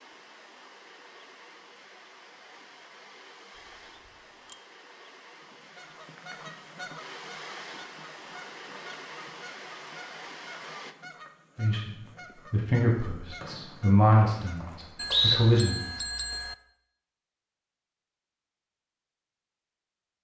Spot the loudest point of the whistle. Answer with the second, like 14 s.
15 s.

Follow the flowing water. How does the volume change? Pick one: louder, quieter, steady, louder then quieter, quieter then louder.
louder.